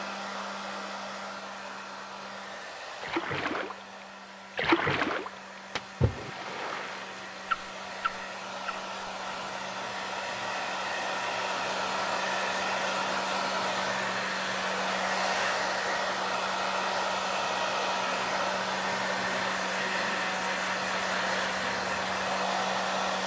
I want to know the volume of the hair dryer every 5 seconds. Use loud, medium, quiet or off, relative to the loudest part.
medium, medium, loud, loud, loud.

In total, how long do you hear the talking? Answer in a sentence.
The talking can't be heard in this clip.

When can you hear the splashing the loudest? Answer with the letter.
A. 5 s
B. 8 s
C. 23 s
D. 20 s
A.